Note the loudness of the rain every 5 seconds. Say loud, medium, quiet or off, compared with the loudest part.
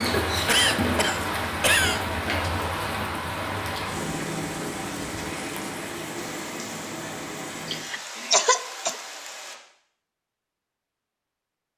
loud, medium, off.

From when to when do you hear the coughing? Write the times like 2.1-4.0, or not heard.
0.5-2.0, 7.7-8.9.